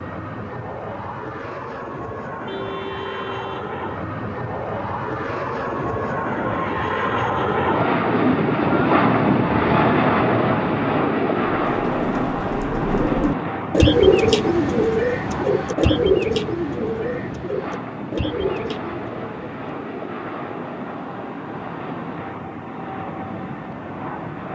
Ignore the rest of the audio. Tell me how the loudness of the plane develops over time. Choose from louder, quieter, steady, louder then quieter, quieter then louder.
louder then quieter.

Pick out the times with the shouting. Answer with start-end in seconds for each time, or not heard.
not heard.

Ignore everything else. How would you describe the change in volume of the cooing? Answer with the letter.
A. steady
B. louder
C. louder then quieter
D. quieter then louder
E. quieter
C.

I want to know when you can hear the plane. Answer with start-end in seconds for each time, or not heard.
0.0-24.5.